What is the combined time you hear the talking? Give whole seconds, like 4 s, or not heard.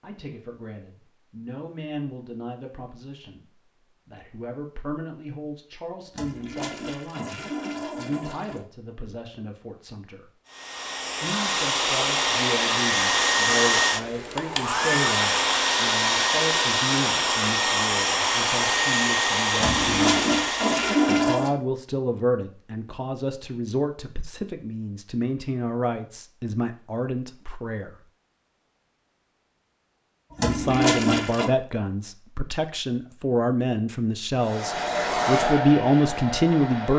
33 s.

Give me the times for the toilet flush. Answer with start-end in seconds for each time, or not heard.
6.1-8.7, 19.6-21.5, 30.4-31.5.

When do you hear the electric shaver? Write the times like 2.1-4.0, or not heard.
not heard.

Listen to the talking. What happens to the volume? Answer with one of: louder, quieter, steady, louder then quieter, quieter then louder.
louder.